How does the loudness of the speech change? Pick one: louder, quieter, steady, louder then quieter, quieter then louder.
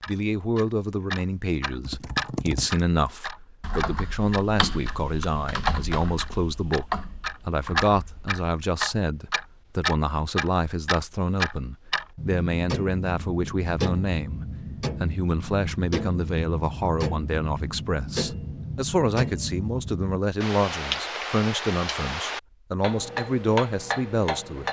steady.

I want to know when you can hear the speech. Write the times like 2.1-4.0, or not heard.
0.1-24.6.